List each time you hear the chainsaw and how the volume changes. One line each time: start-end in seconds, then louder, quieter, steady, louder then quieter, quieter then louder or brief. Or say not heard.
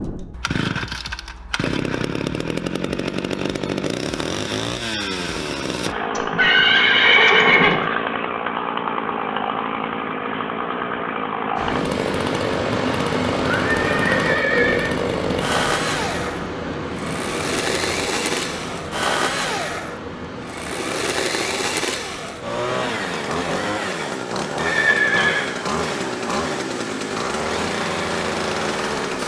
0.0-29.2 steady.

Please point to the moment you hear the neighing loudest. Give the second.
7 s.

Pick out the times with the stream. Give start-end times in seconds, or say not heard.
11.6-29.2.